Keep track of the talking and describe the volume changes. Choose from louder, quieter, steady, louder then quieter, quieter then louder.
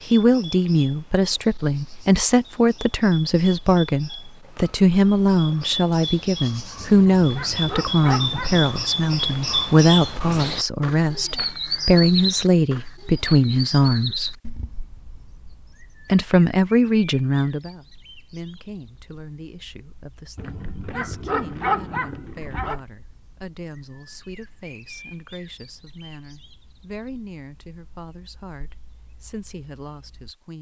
quieter.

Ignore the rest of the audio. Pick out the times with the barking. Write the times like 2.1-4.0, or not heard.
6.8-8.7, 20.4-22.8.